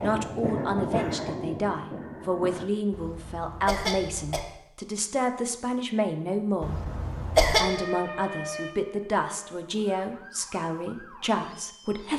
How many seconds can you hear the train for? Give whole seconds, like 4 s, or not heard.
3 s.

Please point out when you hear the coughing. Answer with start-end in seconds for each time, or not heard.
2.9-4.4, 6.6-7.7.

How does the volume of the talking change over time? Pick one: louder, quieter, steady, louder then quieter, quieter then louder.
steady.